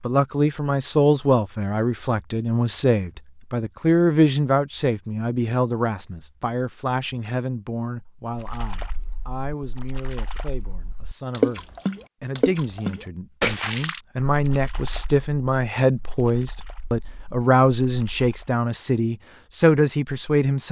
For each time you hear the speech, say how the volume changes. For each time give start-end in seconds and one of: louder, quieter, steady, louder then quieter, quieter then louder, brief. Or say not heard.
0.0-20.6 quieter then louder.